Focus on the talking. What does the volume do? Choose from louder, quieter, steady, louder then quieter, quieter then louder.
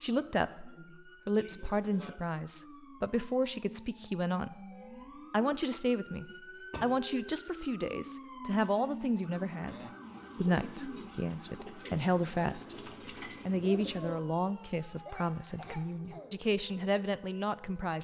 steady.